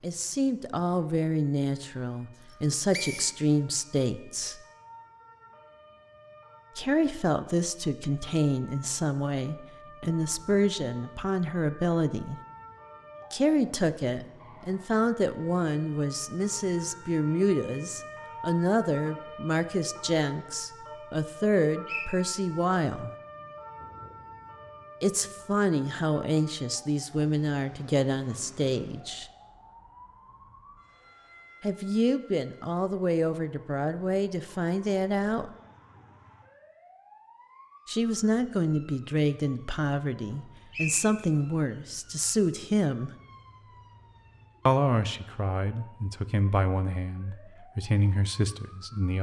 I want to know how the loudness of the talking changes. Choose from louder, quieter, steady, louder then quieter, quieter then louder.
steady.